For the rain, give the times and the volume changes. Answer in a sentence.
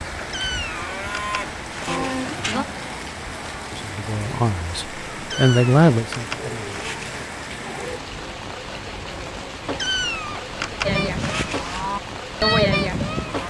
You can hear the rain from 0.0 to 13.4 s, at a steady volume.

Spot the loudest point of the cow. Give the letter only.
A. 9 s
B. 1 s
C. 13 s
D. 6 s
C.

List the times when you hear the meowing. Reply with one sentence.
The meowing can be heard from 0.3 to 2.8 s, from 5.3 to 7.2 s and from 9.8 to 11.9 s.